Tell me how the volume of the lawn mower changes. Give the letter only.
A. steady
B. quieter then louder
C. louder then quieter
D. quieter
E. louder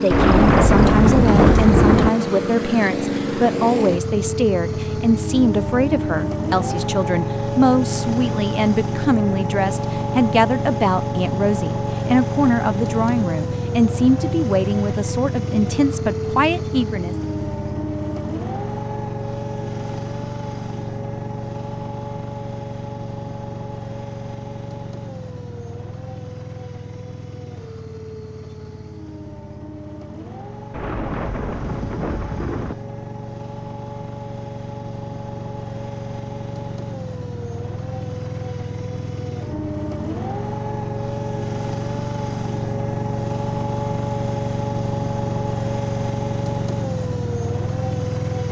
B.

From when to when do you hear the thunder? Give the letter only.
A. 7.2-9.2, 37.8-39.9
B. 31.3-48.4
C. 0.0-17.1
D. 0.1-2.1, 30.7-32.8
D.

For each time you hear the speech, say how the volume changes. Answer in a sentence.
The speech can be heard from 0.0 to 17.1 s, at a steady volume.